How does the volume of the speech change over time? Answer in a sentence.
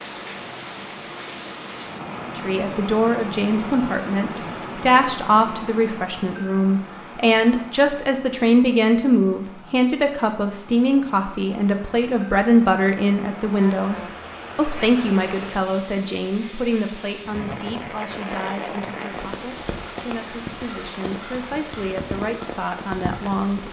The loudness of the speech goes down.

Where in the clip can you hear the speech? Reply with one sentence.
You can hear the speech from 2.4 to 23.6 s.